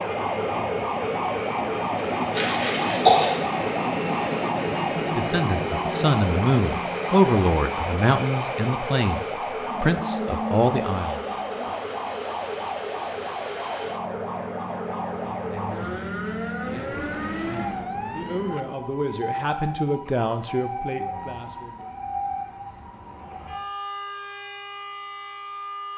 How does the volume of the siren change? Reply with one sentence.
The volume of the siren goes down.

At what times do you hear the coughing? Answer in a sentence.
The coughing can be heard from 2.4 to 3.4 s.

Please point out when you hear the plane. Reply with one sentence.
You can hear the plane from 0.0 to 18.6 s.